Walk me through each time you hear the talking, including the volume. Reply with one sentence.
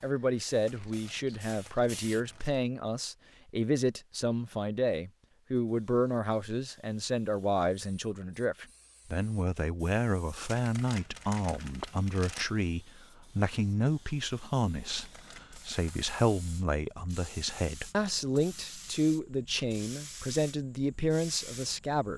The talking can be heard from 0.0 to 22.1 s, at a steady volume.